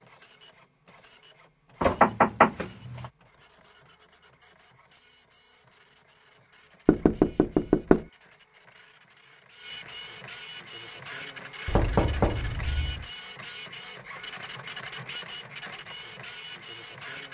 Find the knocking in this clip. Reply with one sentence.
You can hear the knocking from 1.8 to 3.1 s, from 6.8 to 8.1 s and from 11.7 to 13.1 s.